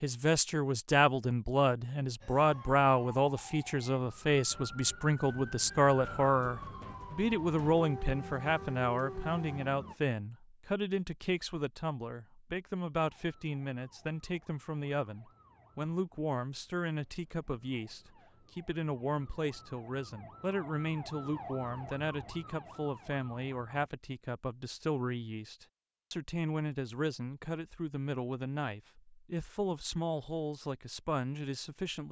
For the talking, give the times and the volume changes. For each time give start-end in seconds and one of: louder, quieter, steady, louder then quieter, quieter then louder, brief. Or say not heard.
0.0-32.0 quieter.